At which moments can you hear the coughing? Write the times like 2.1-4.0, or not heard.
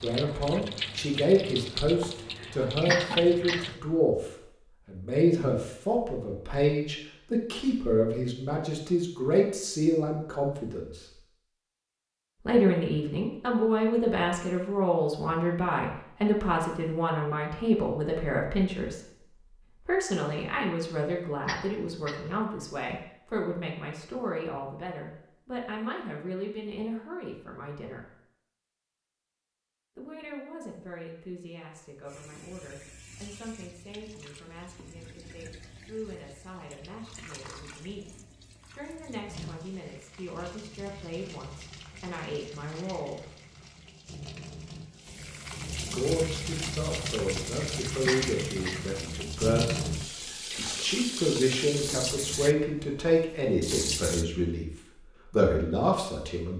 2.9-3.8, 21.4-22.4, 48.0-49.0.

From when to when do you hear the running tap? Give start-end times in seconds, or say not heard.
0.0-3.8, 32.0-54.2.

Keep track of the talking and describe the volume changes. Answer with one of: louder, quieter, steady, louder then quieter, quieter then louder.
quieter then louder.